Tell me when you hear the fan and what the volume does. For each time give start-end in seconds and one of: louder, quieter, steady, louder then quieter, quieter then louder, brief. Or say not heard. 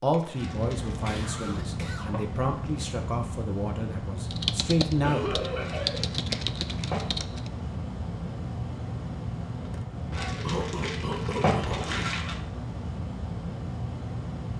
0.0-14.5 steady.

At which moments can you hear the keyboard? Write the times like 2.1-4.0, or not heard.
4.3-7.5.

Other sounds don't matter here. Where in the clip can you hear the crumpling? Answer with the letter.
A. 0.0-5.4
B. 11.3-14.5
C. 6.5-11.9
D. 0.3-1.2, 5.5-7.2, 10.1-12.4
D.